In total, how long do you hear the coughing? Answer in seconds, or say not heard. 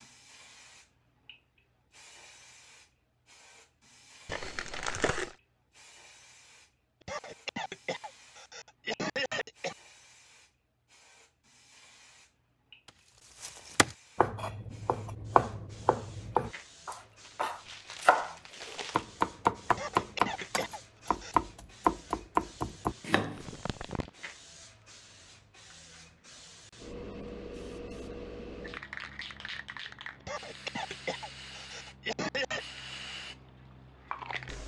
7 s.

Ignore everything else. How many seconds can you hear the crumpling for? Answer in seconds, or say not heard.
4 s.